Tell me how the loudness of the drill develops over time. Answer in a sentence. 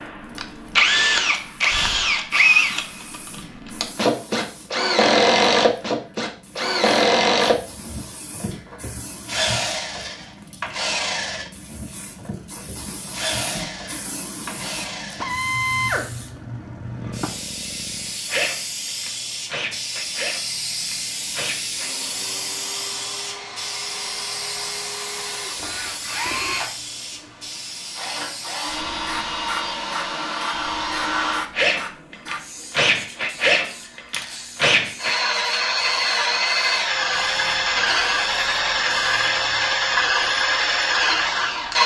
The loudness of the drill goes down, then up.